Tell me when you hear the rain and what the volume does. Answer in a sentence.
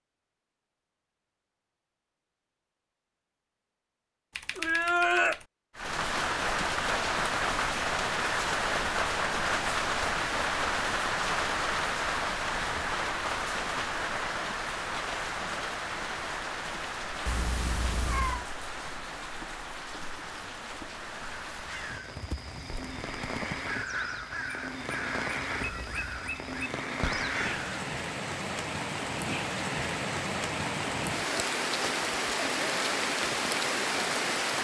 You can hear the rain from 5.8 to 34.5 s, getting quieter then louder.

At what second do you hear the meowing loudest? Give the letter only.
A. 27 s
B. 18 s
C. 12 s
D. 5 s
D.